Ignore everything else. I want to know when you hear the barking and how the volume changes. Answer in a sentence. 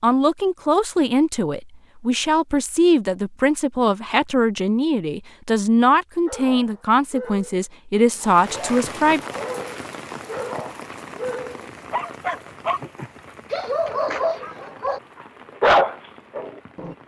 You can hear the barking from 6.2 to 12.8 s, getting louder; briefly from 13.5 to 15.0 s; and briefly from 15.6 to 16.9 s.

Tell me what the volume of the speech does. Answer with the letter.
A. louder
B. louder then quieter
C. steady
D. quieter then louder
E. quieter
C.